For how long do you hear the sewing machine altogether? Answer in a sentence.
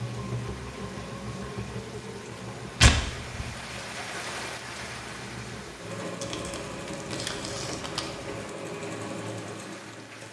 You can hear the sewing machine for 10 seconds altogether.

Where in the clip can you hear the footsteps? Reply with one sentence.
The footsteps can't be heard in this clip.